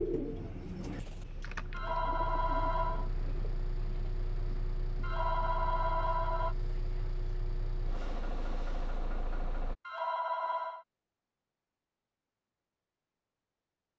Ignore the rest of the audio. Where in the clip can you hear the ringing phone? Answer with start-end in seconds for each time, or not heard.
1.7-3.1, 5.0-6.5, 9.8-10.8.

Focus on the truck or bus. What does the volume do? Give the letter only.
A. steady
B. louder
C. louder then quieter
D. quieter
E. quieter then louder
B.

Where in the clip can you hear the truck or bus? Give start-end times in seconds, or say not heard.
0.0-9.8.